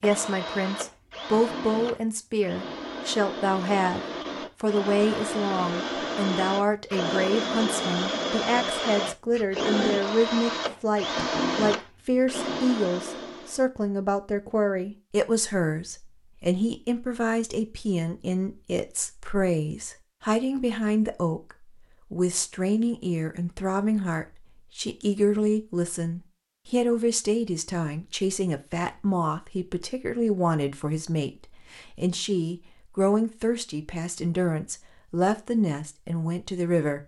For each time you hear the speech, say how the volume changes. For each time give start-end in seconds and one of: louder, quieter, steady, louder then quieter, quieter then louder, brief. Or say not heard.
0.0-37.0 steady.